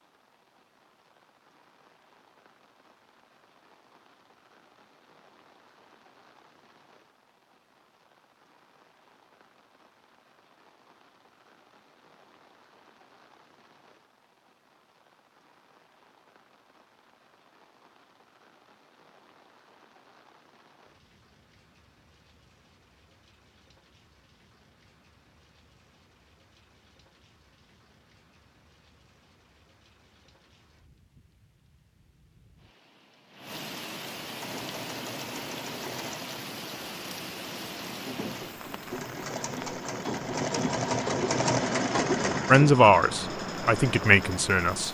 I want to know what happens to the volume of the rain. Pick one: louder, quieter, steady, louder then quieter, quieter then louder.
louder.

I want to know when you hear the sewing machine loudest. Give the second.
42 s.